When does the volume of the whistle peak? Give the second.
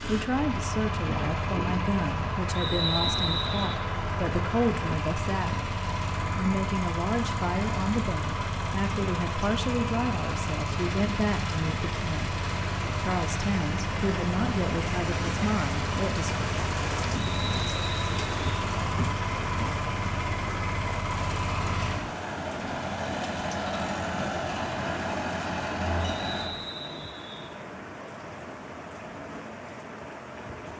3 s.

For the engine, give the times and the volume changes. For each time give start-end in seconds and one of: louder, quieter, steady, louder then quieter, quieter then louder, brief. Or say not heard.
0.0-26.5 steady.